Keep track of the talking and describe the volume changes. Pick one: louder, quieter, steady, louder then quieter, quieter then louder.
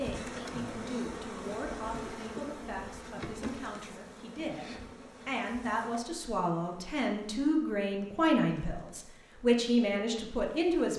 louder.